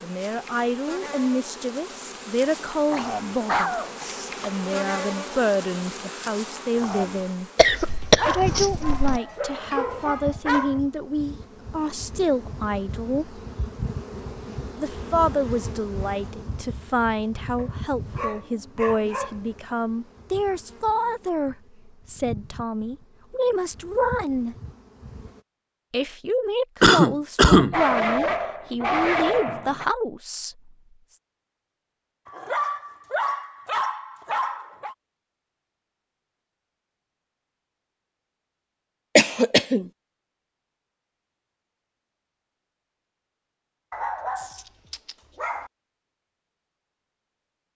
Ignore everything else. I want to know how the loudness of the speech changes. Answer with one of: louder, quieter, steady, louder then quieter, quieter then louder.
steady.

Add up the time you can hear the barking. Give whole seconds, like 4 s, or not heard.
13 s.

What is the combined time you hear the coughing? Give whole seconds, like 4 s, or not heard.
3 s.